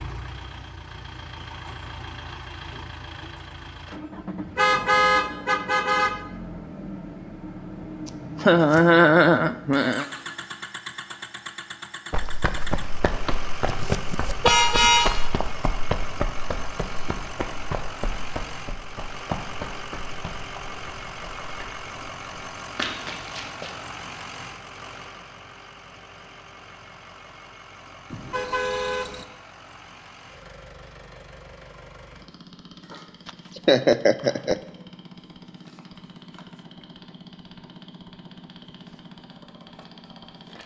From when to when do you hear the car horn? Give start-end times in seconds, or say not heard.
4.5-6.2, 13.7-15.3, 28.1-29.2.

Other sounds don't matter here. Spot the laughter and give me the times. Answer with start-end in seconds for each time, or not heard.
8.1-10.1, 33.2-34.5.